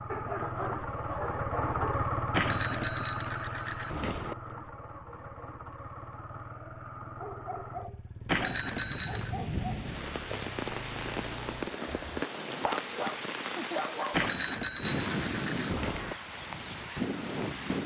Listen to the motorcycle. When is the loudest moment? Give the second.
2 s.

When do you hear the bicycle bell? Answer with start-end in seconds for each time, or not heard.
2.3-4.3, 8.2-9.3, 14.1-16.1.